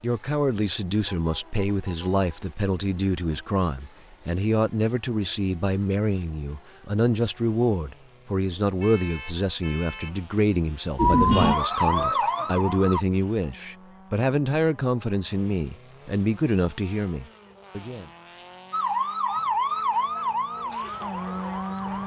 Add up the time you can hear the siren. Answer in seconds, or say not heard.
5 s.